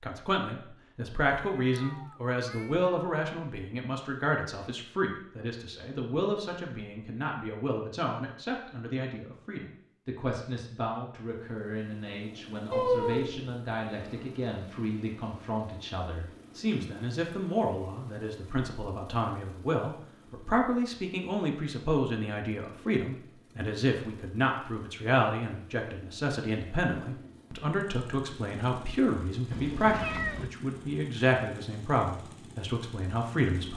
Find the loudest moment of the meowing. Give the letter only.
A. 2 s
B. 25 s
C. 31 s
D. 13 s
D.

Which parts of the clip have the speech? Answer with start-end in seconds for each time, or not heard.
0.0-33.7.